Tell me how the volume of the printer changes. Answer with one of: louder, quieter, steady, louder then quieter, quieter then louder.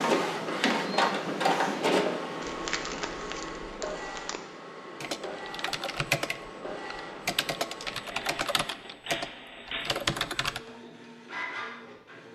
quieter.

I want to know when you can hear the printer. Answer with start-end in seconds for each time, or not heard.
0.0-12.3.